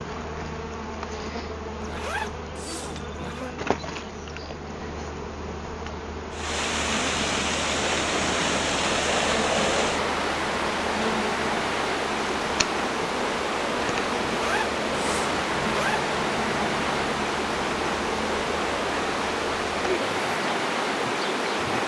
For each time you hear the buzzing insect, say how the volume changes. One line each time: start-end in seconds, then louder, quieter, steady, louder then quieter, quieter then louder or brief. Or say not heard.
0.0-21.8 steady.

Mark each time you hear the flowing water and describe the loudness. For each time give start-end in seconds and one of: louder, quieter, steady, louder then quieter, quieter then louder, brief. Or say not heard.
6.3-21.8 steady.